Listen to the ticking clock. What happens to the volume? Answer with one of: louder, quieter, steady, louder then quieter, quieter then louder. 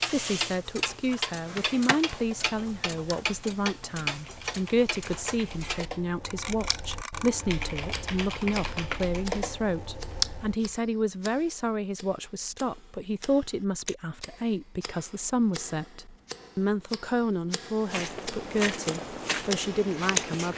quieter then louder.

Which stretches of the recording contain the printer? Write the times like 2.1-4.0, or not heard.
not heard.